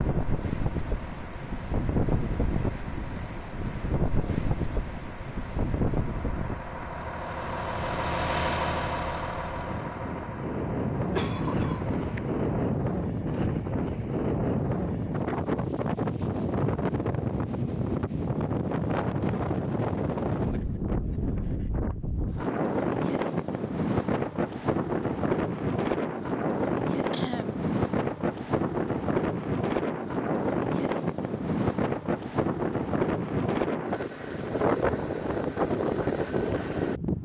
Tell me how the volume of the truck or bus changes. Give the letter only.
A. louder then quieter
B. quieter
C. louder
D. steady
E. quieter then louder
A.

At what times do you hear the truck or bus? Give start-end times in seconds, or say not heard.
0.0-12.5.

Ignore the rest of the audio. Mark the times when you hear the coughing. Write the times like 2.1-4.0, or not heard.
11.2-12.2, 27.1-27.6.